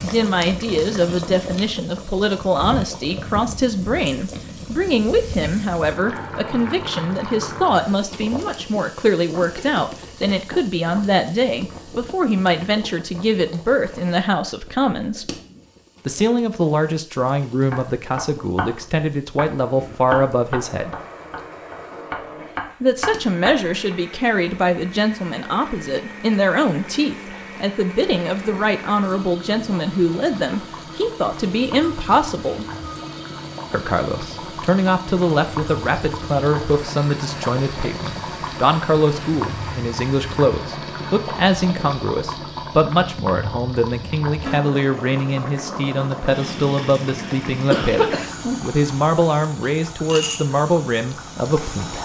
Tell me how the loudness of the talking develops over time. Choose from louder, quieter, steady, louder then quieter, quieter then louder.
steady.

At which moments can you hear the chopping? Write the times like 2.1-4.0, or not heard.
17.7-23.9.